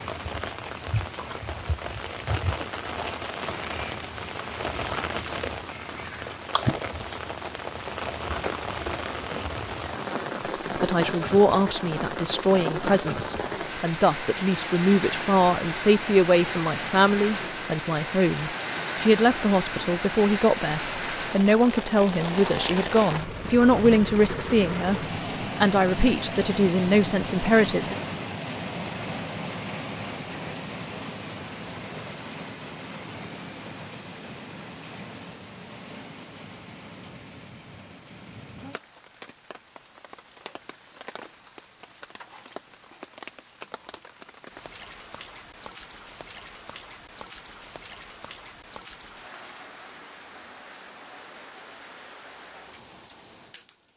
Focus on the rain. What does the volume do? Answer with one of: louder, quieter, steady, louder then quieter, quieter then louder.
quieter.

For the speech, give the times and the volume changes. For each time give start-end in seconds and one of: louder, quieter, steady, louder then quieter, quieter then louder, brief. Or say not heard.
10.8-25.0 steady
25.6-27.9 brief.